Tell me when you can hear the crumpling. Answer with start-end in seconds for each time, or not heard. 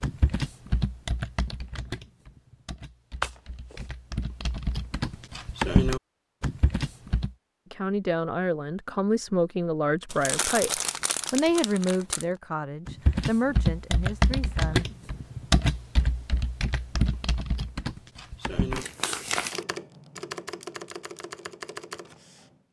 3.2-3.9, 10.1-12.2, 18.7-19.6.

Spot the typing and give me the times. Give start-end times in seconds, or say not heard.
0.0-7.3, 12.8-18.9, 19.5-22.6.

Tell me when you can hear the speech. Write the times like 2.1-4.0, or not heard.
7.7-14.8.